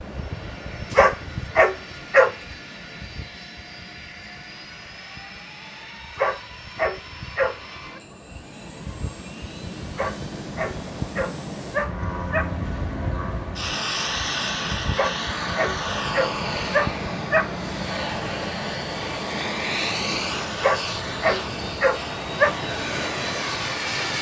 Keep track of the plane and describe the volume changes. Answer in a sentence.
The volume of the plane goes up.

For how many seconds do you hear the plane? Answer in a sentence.
You can hear the plane for 24 seconds altogether.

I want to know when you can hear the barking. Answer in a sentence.
You can hear the barking from 0.9 to 2.3 s, from 6.2 to 8.0 s, from 9.9 to 12.5 s, from 14.9 to 17.5 s and from 20.6 to 22.6 s.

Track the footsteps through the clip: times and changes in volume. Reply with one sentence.
The footsteps can't be heard in this clip.